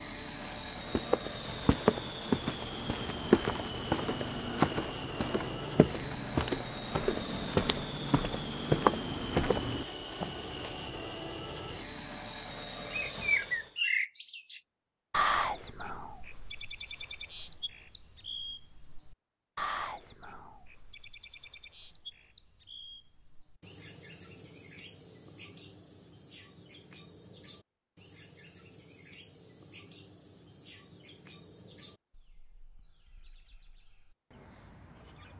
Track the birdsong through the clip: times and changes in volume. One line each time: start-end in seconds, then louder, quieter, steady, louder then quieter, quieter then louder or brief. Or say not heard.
12.8-35.3 quieter.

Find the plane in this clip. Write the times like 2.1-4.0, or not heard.
0.0-13.8.